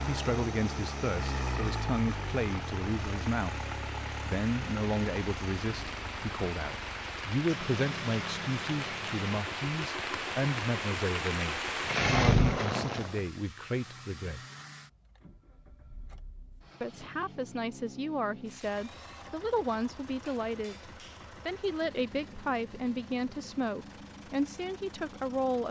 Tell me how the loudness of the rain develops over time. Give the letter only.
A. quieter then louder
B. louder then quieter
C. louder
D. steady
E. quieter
C.